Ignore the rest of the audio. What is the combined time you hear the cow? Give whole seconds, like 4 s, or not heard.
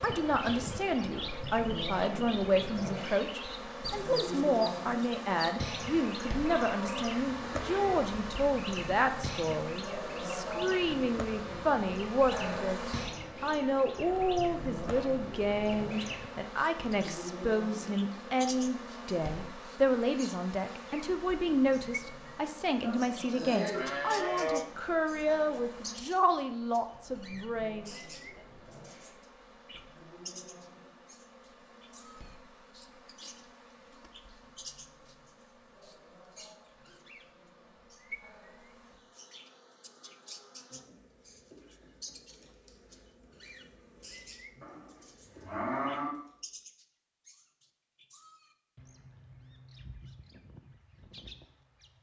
5 s.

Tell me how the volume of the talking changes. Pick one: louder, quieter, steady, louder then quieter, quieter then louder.
steady.